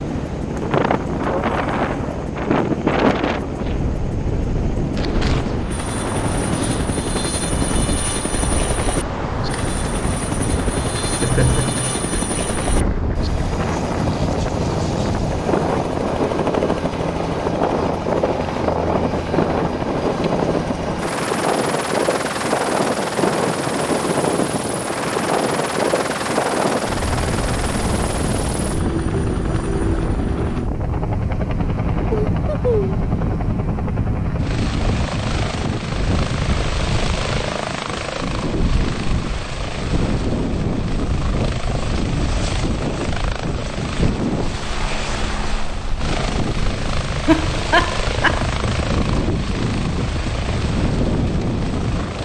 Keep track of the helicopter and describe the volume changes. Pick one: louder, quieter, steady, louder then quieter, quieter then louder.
steady.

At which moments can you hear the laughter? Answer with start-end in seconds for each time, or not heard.
11.2-12.4, 32.1-33.0, 47.2-48.5.